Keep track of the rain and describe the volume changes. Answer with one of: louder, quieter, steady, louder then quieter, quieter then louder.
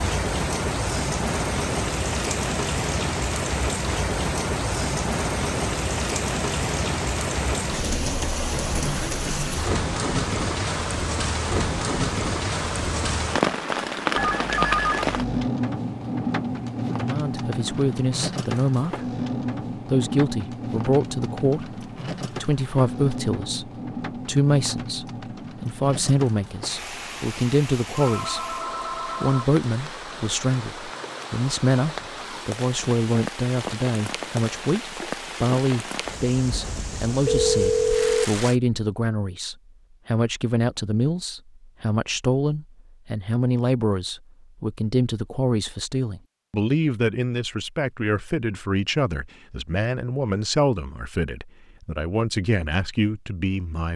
quieter.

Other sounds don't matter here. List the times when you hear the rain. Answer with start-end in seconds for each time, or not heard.
0.0-38.5.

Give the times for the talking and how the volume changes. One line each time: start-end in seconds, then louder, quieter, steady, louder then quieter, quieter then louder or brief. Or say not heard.
16.9-19.1 brief
19.9-53.9 steady.